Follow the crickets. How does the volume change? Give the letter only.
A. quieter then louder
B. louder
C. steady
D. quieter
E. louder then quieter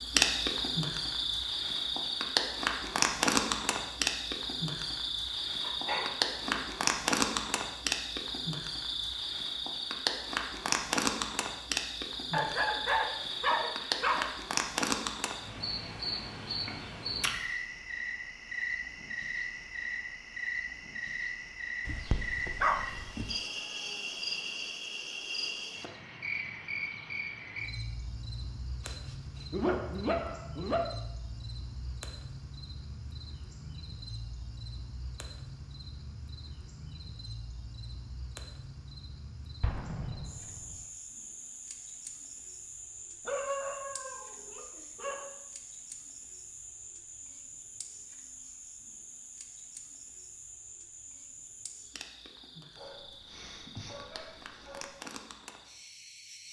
D.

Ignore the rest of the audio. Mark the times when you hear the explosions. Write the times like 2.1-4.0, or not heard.
39.6-40.9.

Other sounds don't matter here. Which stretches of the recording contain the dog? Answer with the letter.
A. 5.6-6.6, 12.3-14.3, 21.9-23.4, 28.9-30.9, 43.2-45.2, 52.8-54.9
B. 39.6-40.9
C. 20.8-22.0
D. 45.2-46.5
A.